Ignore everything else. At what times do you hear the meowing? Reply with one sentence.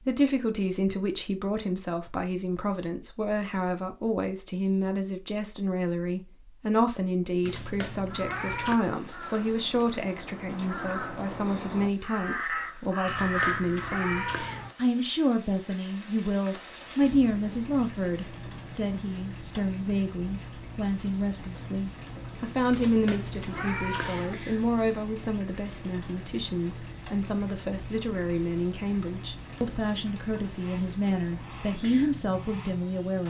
The meowing can be heard from 7.5 to 8.8 s, from 13.1 to 14.7 s and from 22.7 to 24.4 s.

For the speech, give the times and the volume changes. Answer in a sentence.
You can hear the speech from 0.1 to 33.2 s, at a steady volume.